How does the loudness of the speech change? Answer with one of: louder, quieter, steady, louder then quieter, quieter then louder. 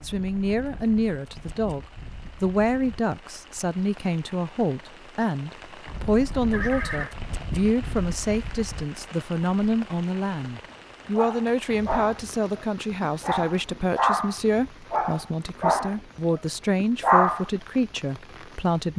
steady.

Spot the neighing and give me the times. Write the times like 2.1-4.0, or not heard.
6.5-7.2.